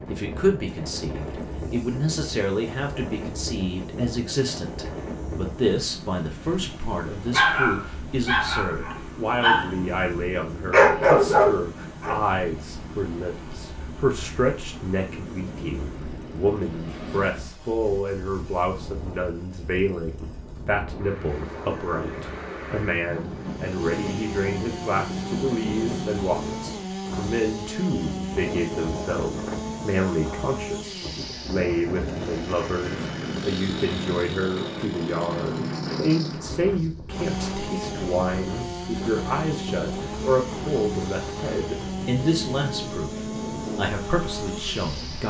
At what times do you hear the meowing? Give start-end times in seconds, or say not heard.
not heard.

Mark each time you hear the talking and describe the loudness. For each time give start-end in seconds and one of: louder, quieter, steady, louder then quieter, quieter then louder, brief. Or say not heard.
0.1-45.2 steady.